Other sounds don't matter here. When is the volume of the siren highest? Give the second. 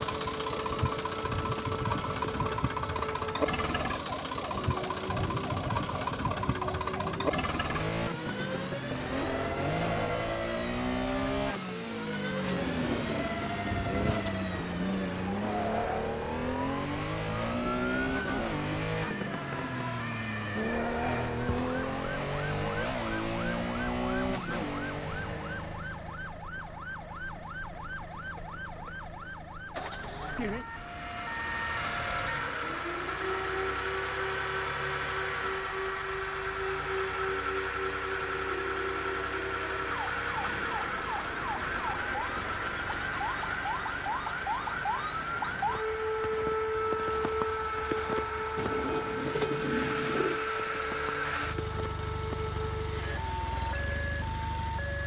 47 s.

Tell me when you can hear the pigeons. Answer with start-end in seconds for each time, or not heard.
12.4-14.3, 48.5-50.5.